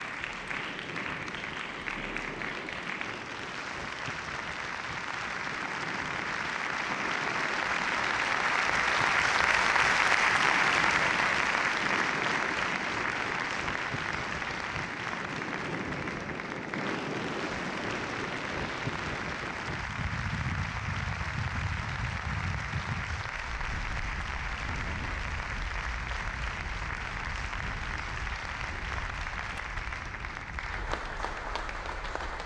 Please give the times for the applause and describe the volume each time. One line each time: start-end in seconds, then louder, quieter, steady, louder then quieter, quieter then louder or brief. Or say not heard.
0.0-32.4 louder then quieter.